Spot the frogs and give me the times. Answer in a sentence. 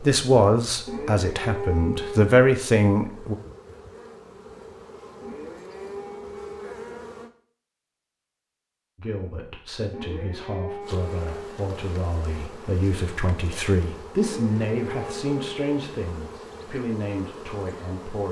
You can't hear the frogs here.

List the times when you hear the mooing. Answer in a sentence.
You can hear the mooing from 0.8 to 2.4 s, from 5.2 to 6.8 s, from 9.9 to 11.7 s and from 14.2 to 15.8 s.